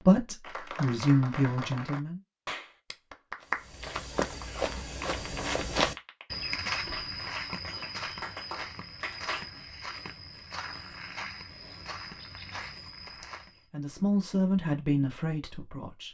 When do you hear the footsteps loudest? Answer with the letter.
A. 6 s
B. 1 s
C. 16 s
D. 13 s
A.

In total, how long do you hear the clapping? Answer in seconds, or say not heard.
9 s.